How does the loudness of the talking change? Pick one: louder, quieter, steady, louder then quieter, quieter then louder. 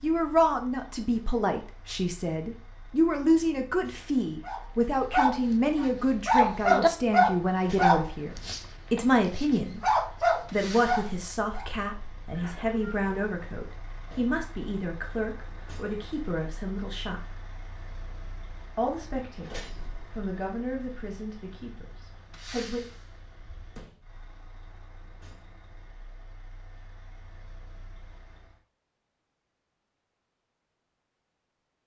quieter.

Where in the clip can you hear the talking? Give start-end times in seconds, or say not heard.
0.0-17.4, 18.8-22.8.